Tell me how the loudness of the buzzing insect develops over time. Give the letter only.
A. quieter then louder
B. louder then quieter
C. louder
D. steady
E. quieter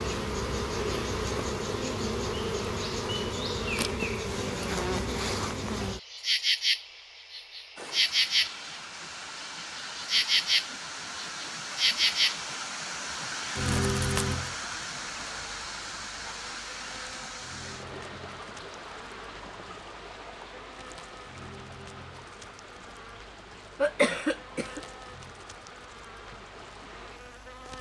E.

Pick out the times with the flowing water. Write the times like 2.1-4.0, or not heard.
7.8-27.7.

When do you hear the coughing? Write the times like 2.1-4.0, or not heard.
23.8-24.8.